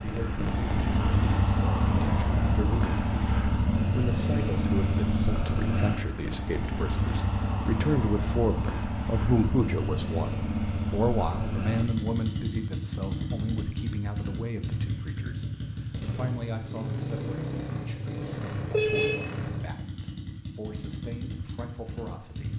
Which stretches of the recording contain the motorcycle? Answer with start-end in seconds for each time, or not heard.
0.0-22.5.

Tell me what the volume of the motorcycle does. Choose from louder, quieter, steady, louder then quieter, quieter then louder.
quieter.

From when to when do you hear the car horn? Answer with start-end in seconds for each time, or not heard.
18.7-19.3.